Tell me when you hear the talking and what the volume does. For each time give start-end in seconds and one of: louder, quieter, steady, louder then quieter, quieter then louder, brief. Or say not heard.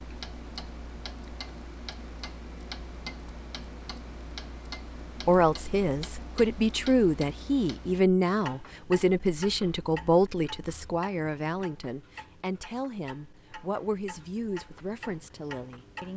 5.2-16.1 quieter.